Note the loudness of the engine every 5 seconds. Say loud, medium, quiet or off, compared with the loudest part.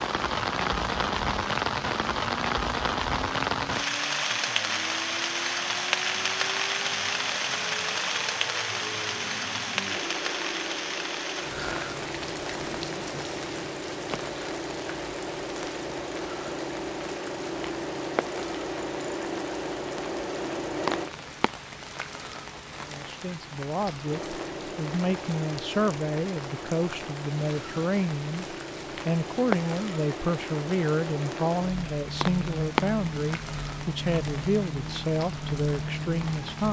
medium, medium, loud, loud, loud, medium, loud, loud.